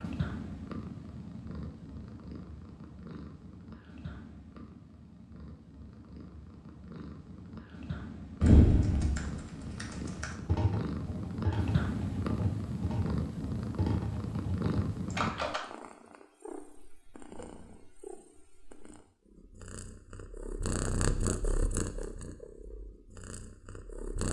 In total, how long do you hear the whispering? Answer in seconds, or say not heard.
not heard.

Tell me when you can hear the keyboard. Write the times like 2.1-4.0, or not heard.
8.4-15.6.